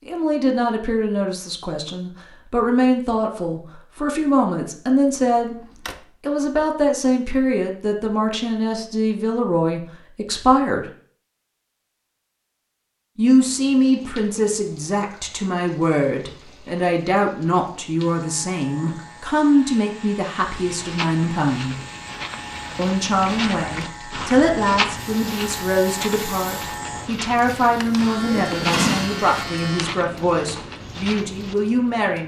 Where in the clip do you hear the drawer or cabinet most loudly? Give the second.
29 s.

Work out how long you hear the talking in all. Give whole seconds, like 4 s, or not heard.
28 s.